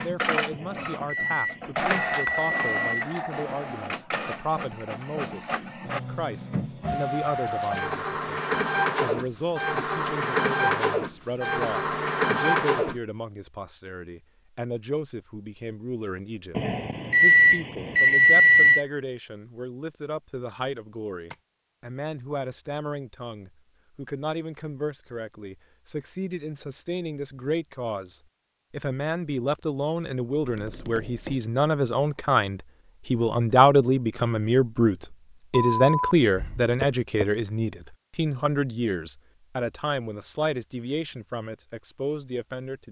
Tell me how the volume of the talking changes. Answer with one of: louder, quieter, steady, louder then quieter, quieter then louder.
louder.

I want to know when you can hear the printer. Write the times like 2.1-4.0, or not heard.
0.0-12.9.